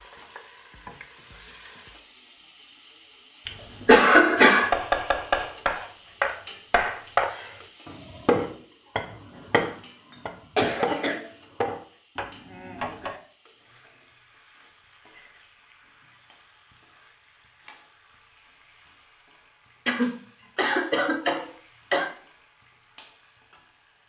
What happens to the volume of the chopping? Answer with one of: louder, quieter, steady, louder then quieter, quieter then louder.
quieter.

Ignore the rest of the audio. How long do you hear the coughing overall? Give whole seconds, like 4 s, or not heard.
4 s.